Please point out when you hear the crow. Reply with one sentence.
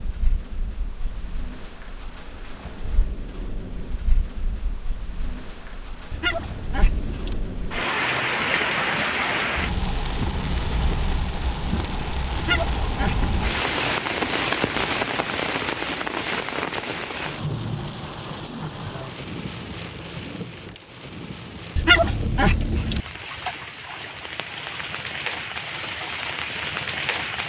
The crow can't be heard in this clip.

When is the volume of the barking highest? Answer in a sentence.
The loudest moment of the barking is at 22 seconds.